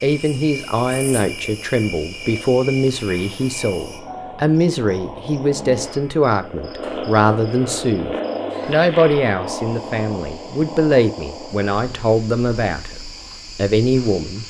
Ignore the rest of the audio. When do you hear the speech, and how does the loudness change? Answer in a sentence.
You can hear the speech from 0.0 to 14.4 s, at a steady volume.